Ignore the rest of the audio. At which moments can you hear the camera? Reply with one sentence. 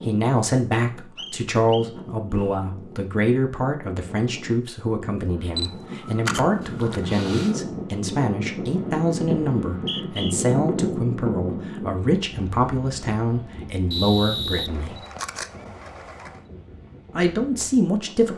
The camera can be heard from 5.5 to 7.6 s and from 14.7 to 16.4 s.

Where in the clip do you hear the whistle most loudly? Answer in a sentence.
The loudest moment of the whistle is at 14 seconds.